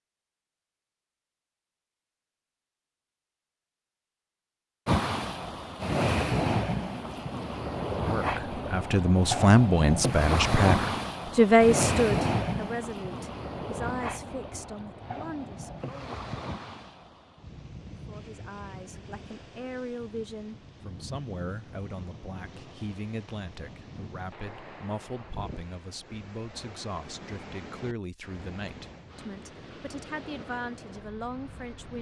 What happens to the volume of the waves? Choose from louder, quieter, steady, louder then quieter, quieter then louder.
quieter.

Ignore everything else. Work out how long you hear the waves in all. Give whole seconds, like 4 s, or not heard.
27 s.